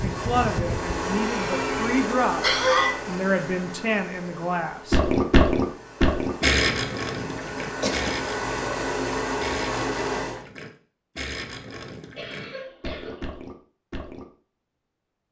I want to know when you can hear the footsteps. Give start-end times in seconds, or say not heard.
not heard.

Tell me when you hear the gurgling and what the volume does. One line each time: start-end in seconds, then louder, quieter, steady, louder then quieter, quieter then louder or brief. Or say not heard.
4.9-14.2 quieter.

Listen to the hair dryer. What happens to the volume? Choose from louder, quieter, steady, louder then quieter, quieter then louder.
quieter then louder.